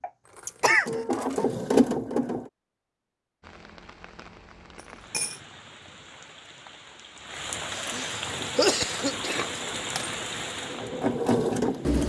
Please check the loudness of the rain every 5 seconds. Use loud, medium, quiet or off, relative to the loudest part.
quiet, loud, loud.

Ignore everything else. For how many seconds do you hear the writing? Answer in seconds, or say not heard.
not heard.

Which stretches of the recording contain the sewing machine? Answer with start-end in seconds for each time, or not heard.
0.0-2.5, 8.2-12.0.